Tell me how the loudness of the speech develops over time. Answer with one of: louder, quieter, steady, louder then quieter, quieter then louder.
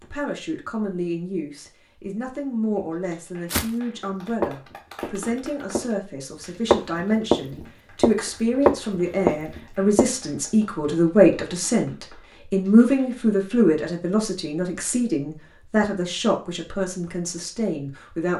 louder then quieter.